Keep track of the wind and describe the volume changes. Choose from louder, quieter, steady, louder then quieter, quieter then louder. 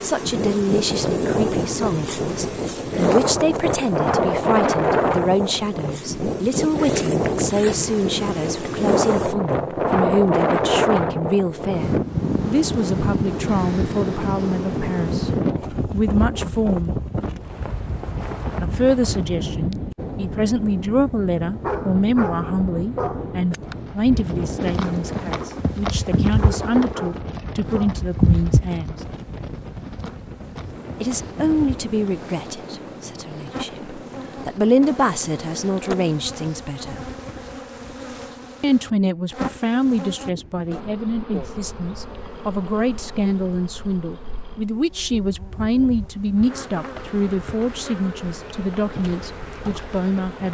quieter.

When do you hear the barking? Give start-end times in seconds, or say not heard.
21.6-23.4, 26.4-27.9.